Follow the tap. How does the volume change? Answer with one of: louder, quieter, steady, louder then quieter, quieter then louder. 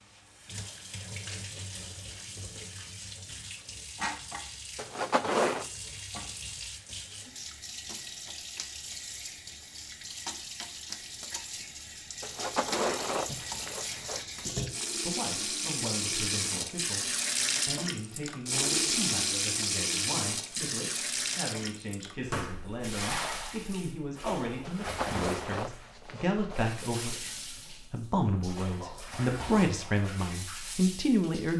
louder then quieter.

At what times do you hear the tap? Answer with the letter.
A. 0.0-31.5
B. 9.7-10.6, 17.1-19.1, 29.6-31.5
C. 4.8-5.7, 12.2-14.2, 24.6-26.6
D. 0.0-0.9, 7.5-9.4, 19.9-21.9
A.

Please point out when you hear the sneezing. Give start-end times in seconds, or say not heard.
not heard.